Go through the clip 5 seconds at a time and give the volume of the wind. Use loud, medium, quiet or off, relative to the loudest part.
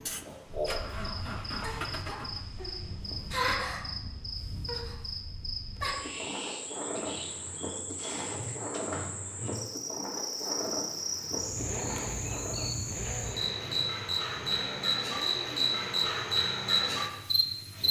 medium, loud, loud, off.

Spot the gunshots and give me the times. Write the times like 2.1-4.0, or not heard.
not heard.